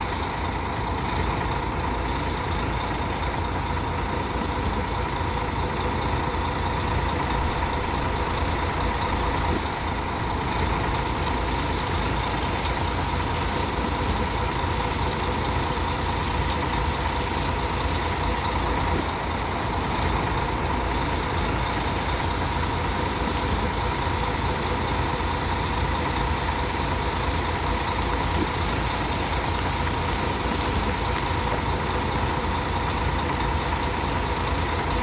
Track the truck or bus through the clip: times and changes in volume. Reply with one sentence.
The truck or bus can be heard from 0.0 to 34.9 s, at a steady volume.